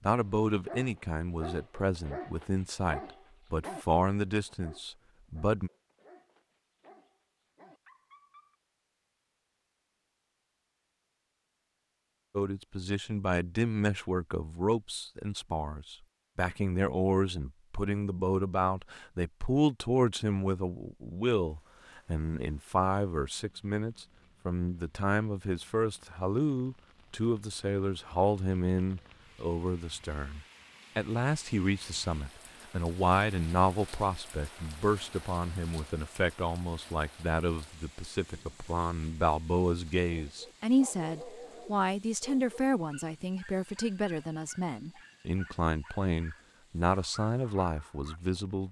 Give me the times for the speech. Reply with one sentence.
The speech can be heard from 0.0 to 5.7 s and from 12.3 to 48.6 s.